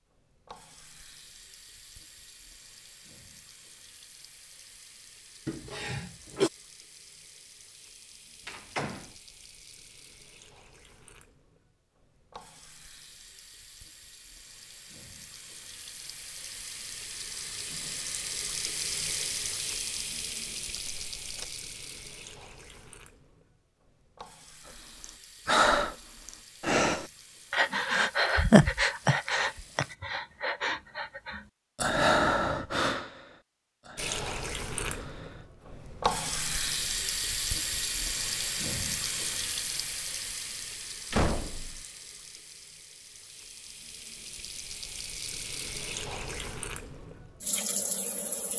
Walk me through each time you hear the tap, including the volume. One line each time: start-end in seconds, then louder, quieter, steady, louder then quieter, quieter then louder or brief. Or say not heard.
0.0-29.9 louder then quieter
34.0-48.5 quieter then louder.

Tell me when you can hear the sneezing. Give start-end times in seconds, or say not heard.
5.5-6.5.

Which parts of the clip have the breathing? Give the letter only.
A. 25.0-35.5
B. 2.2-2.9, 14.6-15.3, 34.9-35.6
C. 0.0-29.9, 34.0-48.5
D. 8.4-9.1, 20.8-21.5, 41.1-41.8
A.